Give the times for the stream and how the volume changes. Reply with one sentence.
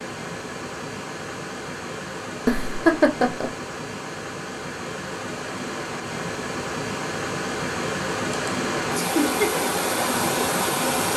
The stream can be heard from 0.0 to 11.1 s, getting louder.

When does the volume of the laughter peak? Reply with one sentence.
The volume of the laughter peaks at 3 seconds.